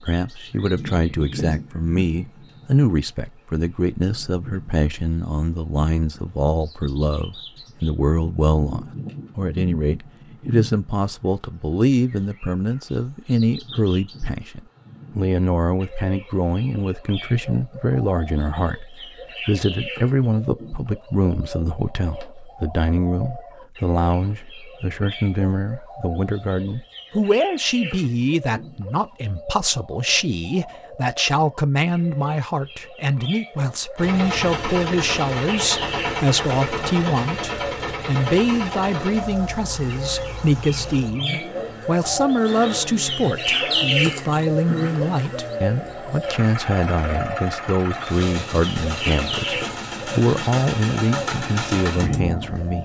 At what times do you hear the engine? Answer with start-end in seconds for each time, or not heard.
34.0-52.7.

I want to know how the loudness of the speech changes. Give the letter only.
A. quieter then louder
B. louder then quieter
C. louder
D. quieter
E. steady
E.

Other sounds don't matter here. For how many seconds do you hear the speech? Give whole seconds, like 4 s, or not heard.
53 s.